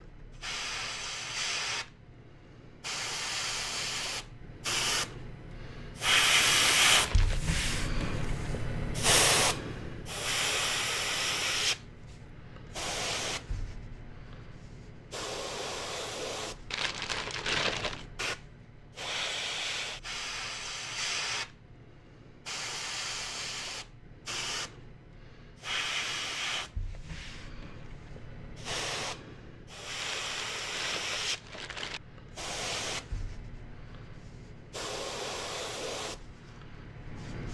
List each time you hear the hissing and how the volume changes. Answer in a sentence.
The hissing can be heard from 0.0 to 37.5 s, getting quieter.